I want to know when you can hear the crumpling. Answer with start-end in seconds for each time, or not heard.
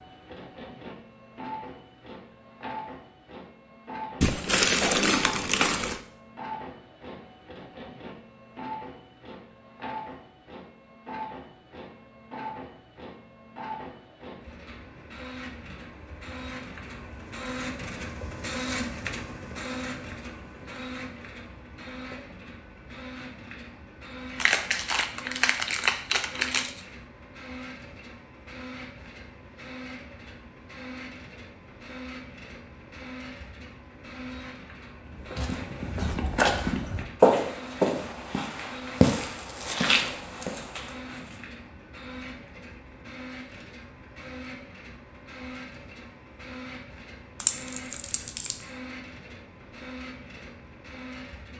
4.2-6.0, 24.4-26.8, 47.4-48.6.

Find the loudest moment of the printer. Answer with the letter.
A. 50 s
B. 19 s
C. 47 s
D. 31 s
B.